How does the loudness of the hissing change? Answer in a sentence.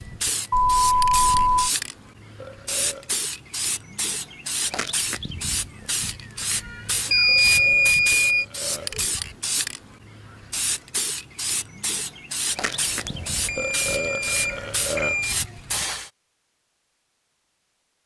The volume of the hissing stays about the same.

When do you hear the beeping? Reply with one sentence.
The beeping can be heard from 0.5 to 1.7 s, from 7.1 to 8.4 s and from 12.6 to 15.3 s.